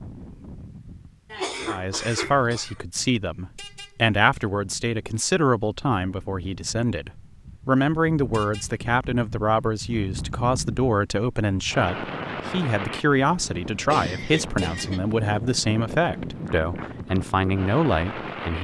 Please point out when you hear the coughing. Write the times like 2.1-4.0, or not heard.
1.3-2.8, 13.8-15.0.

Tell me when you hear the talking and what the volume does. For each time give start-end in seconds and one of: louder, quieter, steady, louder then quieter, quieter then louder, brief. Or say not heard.
1.6-18.5 steady.